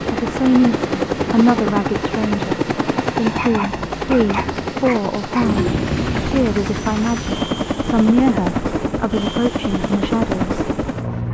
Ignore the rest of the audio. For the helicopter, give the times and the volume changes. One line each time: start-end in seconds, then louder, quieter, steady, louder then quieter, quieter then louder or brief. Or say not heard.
0.0-11.2 steady.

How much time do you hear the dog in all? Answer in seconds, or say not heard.
2 s.